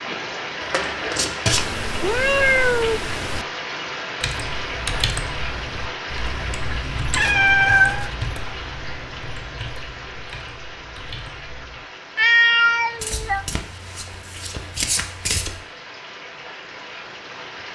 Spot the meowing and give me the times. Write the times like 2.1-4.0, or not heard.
1.5-3.5, 7.2-8.1, 12.2-13.4.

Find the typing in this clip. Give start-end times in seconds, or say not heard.
4.2-11.8.